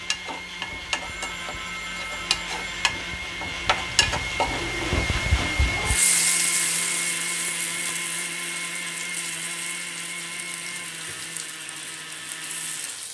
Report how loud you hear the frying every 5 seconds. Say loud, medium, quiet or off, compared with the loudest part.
loud, loud, medium.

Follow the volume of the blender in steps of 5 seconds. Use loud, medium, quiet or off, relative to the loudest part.
loud, loud, medium.